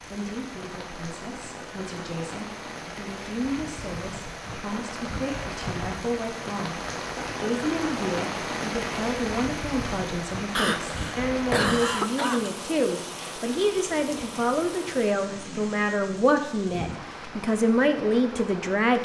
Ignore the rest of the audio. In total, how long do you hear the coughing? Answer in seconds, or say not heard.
2 s.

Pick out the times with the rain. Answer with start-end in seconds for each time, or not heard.
0.0-19.0.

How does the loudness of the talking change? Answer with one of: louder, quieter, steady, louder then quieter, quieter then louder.
louder.